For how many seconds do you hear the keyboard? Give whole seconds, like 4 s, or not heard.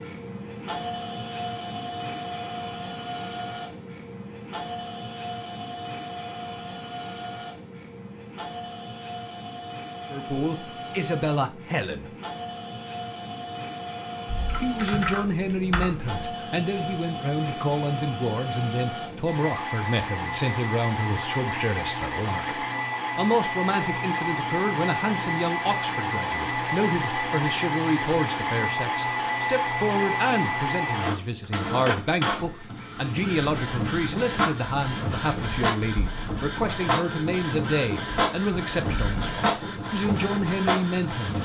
2 s.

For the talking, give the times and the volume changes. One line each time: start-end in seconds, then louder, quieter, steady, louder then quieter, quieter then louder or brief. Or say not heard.
10.1-12.1 brief
14.6-41.4 steady.